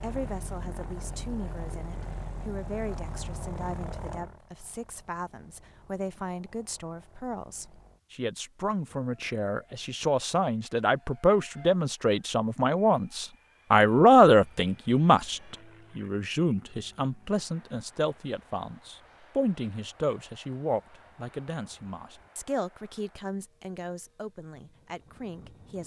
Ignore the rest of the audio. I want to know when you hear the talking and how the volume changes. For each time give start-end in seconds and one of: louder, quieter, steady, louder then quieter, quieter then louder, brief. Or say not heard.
0.0-25.8 louder then quieter.